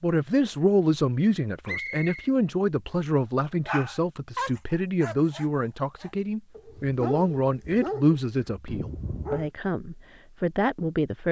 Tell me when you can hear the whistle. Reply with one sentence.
The whistle can be heard from 1.6 to 2.3 s.